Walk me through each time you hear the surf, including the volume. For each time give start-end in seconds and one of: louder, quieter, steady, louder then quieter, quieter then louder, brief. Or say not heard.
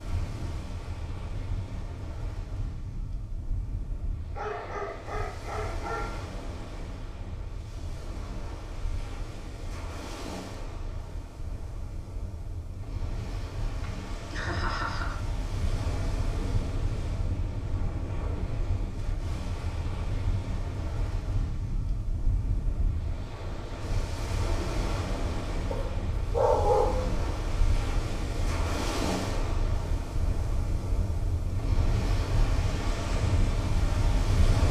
0.0-34.6 louder.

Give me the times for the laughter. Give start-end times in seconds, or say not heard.
13.8-15.2.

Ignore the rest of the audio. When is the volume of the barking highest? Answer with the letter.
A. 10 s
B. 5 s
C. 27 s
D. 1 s
C.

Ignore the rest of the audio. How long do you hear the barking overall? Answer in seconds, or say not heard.
3 s.